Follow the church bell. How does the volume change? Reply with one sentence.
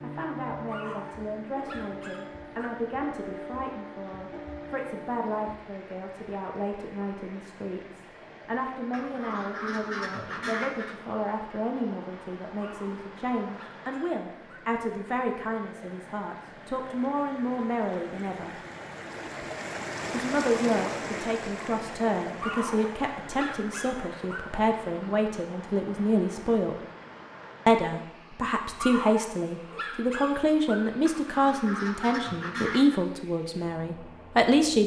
The volume of the church bell stays about the same.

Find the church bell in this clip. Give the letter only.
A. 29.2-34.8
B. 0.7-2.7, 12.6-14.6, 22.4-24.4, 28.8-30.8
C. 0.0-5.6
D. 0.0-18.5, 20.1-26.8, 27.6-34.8
C.